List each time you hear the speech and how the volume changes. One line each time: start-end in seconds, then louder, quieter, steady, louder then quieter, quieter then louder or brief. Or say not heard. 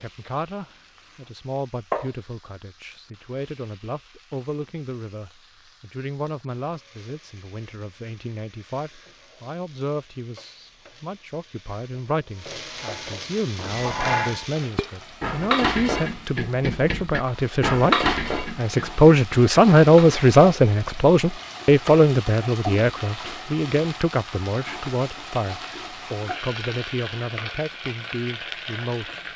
0.0-29.3 louder then quieter.